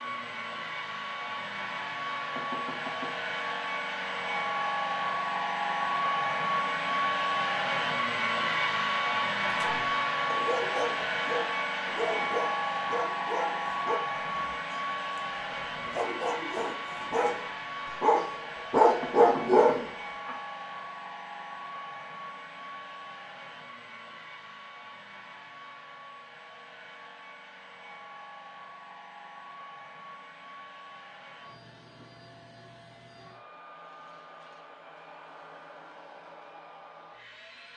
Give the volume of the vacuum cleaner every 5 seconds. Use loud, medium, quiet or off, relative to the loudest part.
medium, loud, loud, medium, quiet, quiet, quiet, quiet.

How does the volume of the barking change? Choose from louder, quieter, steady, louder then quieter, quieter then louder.
louder.